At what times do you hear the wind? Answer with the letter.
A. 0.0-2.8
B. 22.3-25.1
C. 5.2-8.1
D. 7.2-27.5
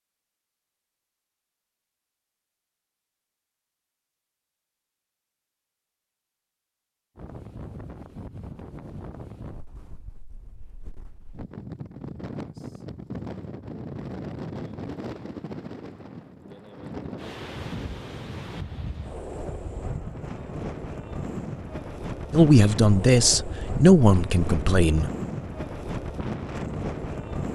D.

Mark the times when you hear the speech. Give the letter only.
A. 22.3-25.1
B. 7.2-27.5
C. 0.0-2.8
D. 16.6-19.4
A.